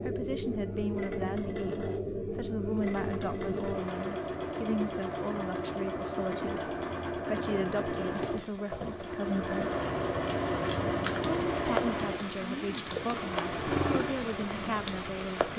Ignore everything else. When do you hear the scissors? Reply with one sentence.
The scissors can be heard from 9.8 to 11.4 s.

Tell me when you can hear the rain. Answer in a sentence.
You can hear the rain from 2.6 to 15.5 s.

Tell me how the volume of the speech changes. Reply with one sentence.
The loudness of the speech stays about the same.